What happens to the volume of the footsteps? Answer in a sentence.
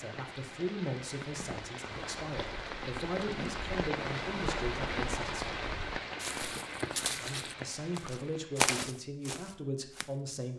The volume of the footsteps goes up.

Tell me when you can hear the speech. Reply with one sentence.
You can hear the speech from 0.0 to 5.5 s and from 7.2 to 10.5 s.